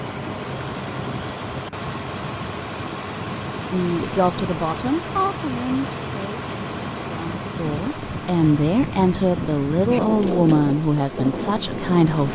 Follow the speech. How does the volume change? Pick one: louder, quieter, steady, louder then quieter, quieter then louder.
quieter then louder.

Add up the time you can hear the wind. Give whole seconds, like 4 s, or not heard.
12 s.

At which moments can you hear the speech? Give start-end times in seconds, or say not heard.
3.7-12.3.